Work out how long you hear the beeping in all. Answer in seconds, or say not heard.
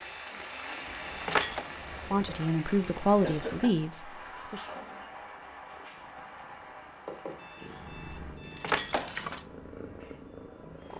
4 s.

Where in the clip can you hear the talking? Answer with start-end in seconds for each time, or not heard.
1.9-4.7.